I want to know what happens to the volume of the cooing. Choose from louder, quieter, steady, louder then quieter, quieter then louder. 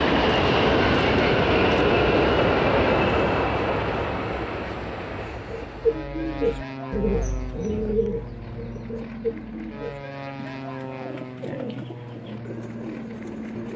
quieter.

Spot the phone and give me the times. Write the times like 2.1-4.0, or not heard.
not heard.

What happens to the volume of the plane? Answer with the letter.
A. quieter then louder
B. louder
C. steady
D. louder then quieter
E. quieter
E.